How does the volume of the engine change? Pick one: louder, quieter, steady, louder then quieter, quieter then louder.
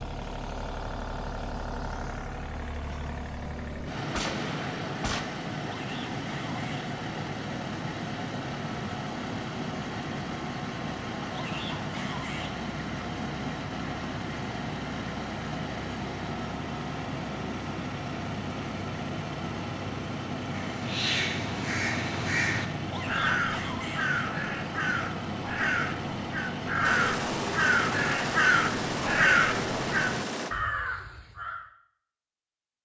steady.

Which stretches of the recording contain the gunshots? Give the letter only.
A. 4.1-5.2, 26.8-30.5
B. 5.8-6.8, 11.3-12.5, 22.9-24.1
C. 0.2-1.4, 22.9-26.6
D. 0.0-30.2
A.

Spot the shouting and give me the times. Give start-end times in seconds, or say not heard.
5.8-6.8, 11.3-12.5, 22.9-24.1.